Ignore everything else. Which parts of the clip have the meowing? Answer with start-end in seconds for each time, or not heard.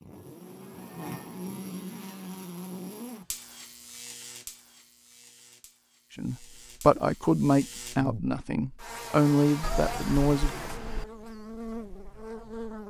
9.6-11.1.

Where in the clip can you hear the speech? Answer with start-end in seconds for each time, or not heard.
6.2-10.6.